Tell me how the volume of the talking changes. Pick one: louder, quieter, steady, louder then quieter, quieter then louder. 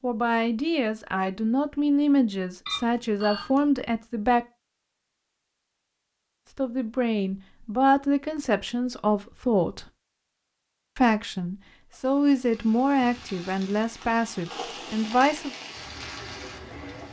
steady.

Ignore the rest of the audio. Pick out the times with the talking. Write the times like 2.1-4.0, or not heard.
0.0-4.5, 6.5-9.8, 10.9-15.5.